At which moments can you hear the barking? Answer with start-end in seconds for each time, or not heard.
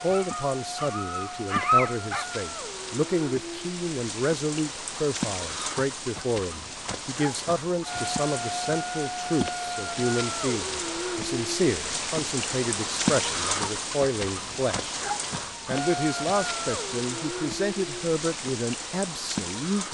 0.0-2.2.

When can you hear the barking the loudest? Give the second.
2 s.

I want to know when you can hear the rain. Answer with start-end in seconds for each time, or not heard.
0.0-19.9.